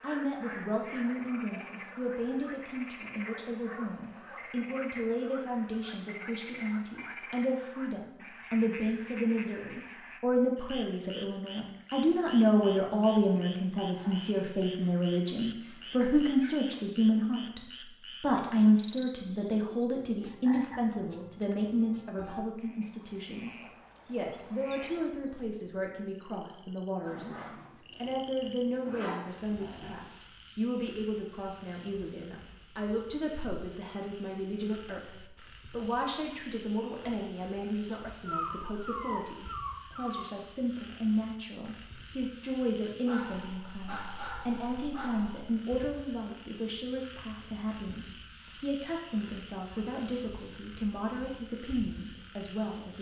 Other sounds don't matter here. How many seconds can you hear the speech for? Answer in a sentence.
The speech can be heard for 52 seconds in total.